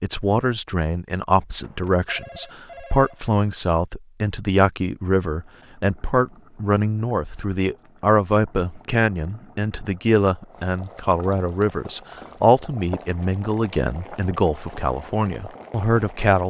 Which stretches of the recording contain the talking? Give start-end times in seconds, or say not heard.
0.0-16.4.